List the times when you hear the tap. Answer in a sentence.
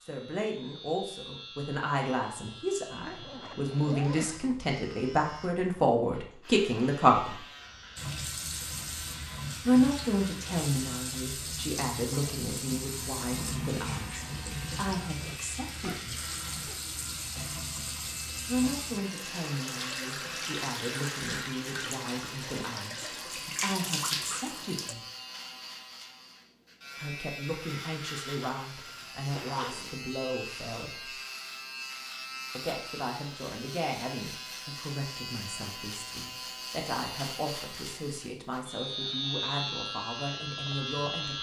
The tap can be heard from 8.0 to 24.9 s.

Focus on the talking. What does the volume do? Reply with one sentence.
The loudness of the talking goes down.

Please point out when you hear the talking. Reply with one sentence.
You can hear the talking from 0.0 to 7.4 s, from 9.7 to 16.2 s, from 18.4 to 25.1 s, from 26.9 to 31.1 s and from 32.5 to 41.3 s.